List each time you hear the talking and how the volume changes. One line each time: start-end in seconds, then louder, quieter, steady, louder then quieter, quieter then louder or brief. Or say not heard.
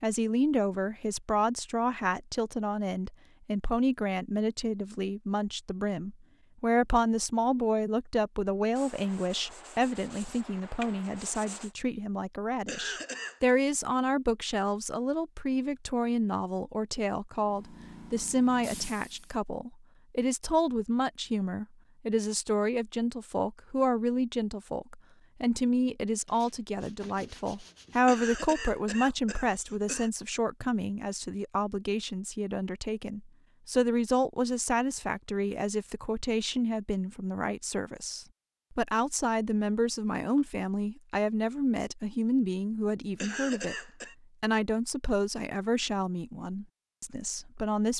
0.0-47.9 steady.